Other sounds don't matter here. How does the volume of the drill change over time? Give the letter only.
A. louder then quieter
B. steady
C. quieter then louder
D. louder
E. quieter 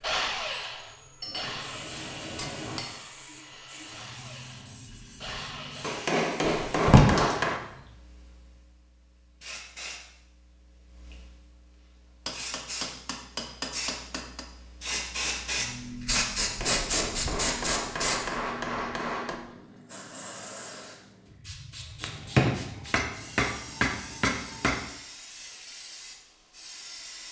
C.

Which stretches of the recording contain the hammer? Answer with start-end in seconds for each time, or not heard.
1.2-3.0, 5.8-7.6, 12.2-14.4, 16.4-19.4, 22.0-24.9.